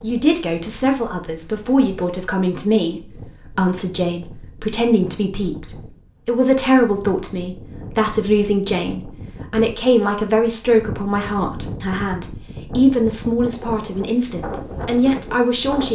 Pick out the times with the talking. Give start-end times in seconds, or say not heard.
0.0-15.8.